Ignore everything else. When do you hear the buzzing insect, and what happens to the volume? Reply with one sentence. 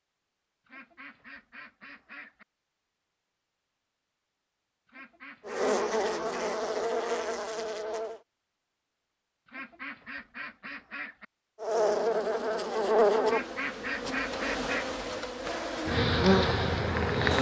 The buzzing insect can be heard briefly from 5.5 to 8.2 s; and from 11.6 to 17.3 s, getting quieter then louder.